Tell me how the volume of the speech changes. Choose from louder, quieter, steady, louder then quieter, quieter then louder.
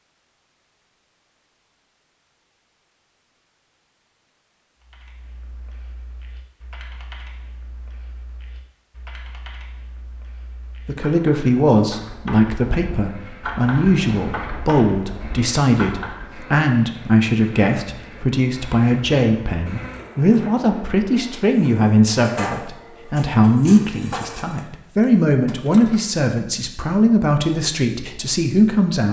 steady.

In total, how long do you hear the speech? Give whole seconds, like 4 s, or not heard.
18 s.